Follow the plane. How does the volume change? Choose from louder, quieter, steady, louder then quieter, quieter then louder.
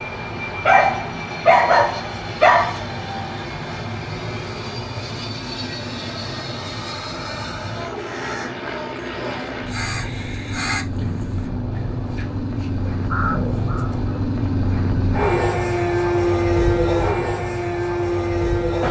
louder.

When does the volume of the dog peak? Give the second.
2 s.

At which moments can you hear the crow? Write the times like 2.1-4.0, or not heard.
8.0-13.9.